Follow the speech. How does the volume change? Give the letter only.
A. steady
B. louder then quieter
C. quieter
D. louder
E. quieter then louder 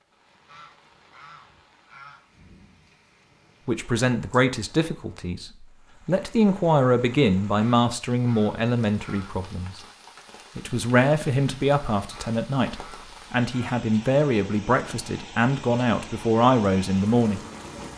A.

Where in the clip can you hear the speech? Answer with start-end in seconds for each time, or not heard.
3.6-9.8, 10.6-17.4.